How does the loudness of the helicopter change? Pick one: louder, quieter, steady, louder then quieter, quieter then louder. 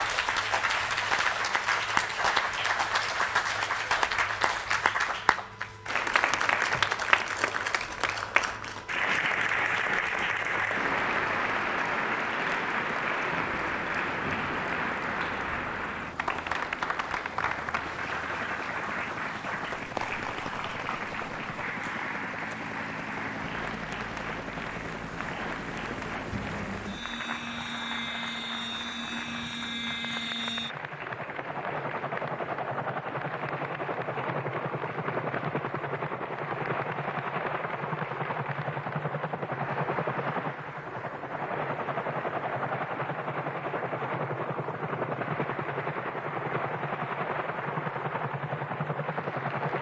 louder.